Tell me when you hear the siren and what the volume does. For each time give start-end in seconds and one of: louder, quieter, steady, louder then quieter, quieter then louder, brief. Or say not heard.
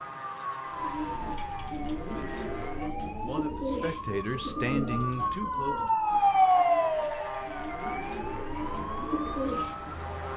0.1-10.3 louder then quieter.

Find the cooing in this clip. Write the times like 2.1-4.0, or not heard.
0.7-10.1.